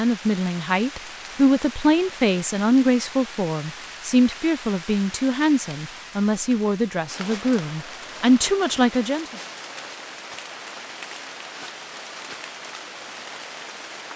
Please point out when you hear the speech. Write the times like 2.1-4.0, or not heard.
0.0-9.3.